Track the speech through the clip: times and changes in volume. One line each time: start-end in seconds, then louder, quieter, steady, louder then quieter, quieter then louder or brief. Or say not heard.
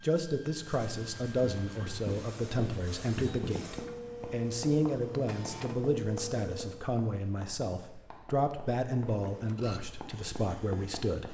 0.0-11.2 steady.